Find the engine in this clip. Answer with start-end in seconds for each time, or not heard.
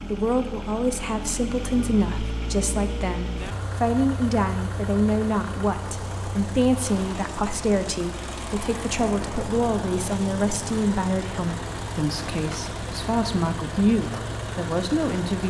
0.0-15.4.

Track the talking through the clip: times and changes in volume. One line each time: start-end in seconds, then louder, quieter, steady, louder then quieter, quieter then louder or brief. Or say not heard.
0.0-15.4 steady.